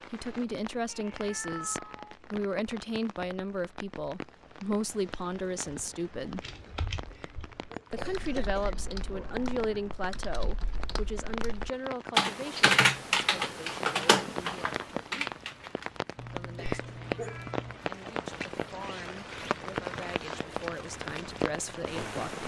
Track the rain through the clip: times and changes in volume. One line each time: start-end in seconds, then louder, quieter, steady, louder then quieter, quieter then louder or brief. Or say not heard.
0.0-22.4 louder.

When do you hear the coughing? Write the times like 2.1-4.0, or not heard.
7.1-8.8, 16.6-17.4.